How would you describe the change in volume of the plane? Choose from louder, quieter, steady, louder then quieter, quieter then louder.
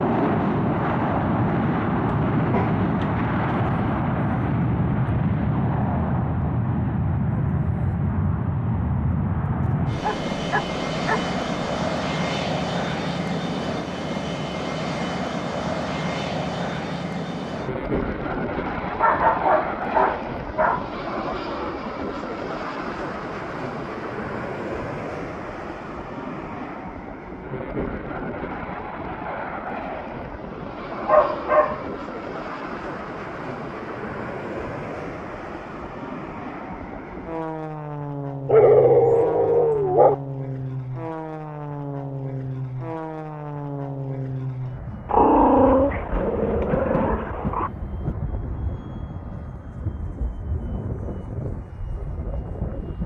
quieter.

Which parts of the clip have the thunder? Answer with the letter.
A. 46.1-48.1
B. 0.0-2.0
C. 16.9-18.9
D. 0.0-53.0
A.